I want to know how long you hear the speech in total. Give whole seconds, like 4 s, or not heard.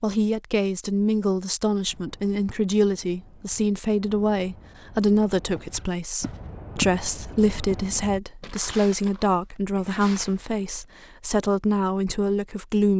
13 s.